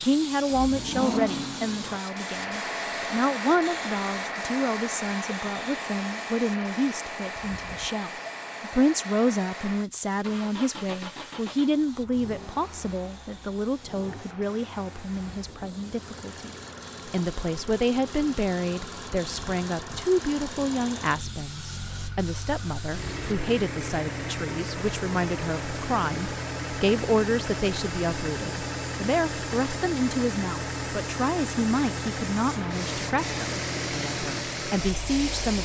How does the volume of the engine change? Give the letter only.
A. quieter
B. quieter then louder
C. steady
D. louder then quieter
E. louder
B.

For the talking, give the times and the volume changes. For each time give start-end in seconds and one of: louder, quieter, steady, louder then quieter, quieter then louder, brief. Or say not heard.
0.0-35.6 steady.